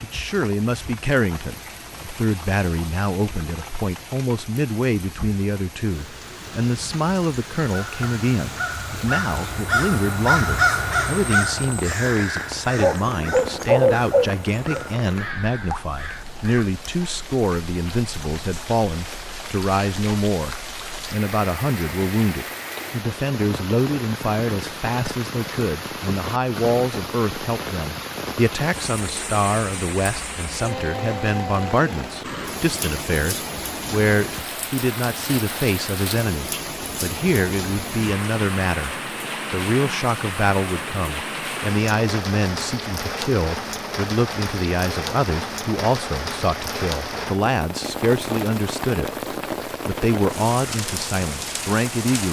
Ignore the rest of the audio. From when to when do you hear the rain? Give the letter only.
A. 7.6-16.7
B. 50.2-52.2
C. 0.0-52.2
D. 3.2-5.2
C.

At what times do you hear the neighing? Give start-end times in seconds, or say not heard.
not heard.